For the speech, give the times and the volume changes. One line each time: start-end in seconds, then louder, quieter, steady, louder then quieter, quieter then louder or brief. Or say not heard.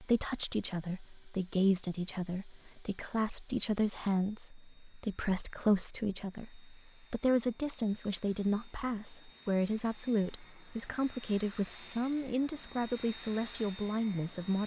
0.0-14.6 steady.